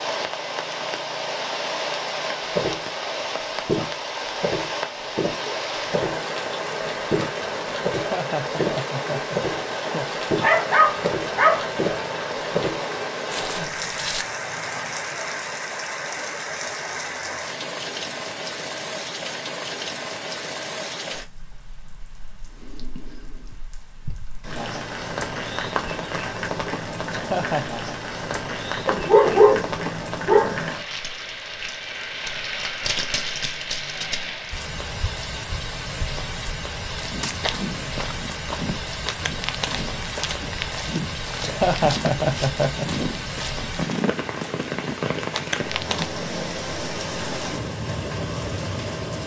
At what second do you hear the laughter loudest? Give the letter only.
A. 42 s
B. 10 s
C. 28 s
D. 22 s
A.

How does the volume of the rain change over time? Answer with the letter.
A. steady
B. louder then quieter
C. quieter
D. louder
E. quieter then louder
A.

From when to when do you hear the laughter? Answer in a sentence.
You can hear the laughter from 7.9 to 10.1 s, from 27.1 to 27.8 s and from 41.4 to 42.9 s.